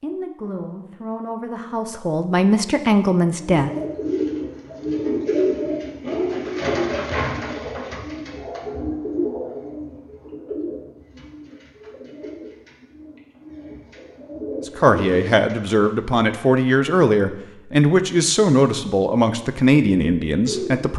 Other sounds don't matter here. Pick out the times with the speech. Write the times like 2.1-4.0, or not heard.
0.0-3.7, 14.7-20.9.